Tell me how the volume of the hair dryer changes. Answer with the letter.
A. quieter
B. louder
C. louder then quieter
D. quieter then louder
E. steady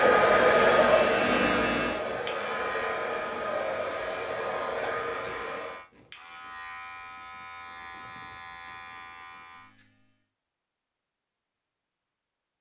A.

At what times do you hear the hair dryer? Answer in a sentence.
The hair dryer can be heard from 0.0 to 5.8 s.